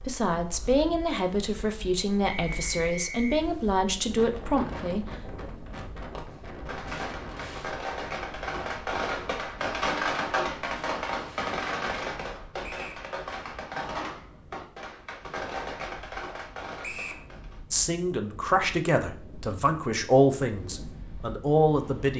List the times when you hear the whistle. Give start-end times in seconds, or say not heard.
2.2-3.5, 12.6-13.1, 16.8-17.2.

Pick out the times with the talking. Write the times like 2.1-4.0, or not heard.
0.1-5.0, 17.7-22.1.